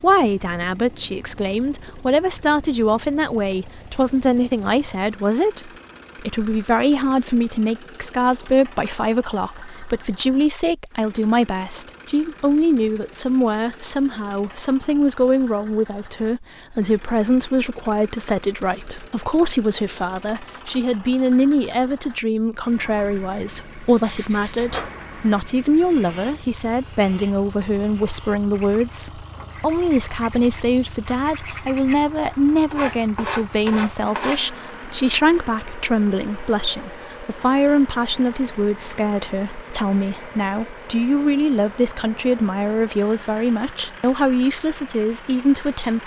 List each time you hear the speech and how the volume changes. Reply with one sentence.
You can hear the speech from 0.0 to 46.0 s, at a steady volume.